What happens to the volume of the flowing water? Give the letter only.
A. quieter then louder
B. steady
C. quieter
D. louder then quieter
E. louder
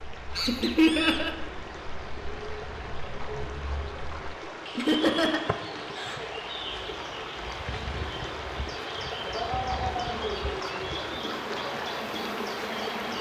E.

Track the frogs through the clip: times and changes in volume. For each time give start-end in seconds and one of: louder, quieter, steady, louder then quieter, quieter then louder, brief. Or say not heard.
not heard.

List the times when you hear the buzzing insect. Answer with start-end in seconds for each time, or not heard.
5.3-13.1.